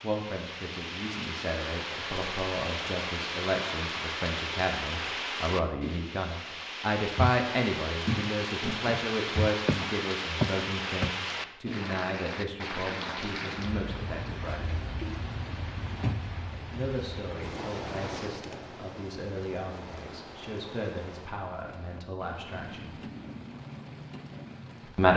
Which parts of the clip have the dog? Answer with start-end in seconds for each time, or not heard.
not heard.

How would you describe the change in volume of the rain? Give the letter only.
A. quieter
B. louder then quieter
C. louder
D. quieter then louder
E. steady
A.